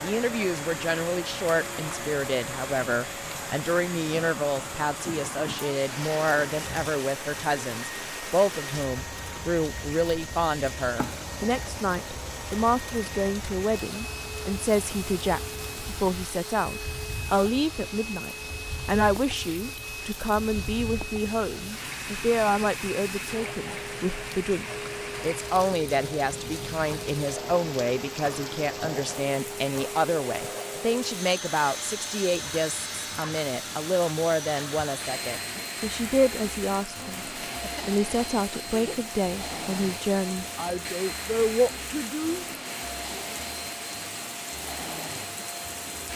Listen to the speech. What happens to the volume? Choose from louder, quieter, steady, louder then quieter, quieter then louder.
steady.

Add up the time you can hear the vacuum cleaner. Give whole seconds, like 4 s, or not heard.
46 s.